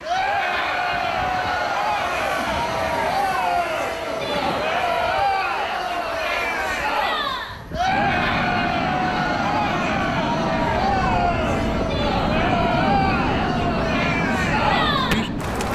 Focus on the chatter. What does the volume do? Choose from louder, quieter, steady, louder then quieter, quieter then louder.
steady.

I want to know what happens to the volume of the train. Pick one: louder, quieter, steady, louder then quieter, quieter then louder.
louder.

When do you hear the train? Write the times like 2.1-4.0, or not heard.
0.0-15.7.